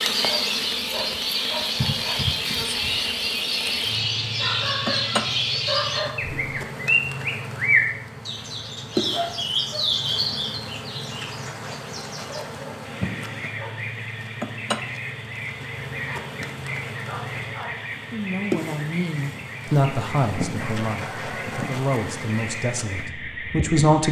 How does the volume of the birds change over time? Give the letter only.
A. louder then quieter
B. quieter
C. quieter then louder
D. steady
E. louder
B.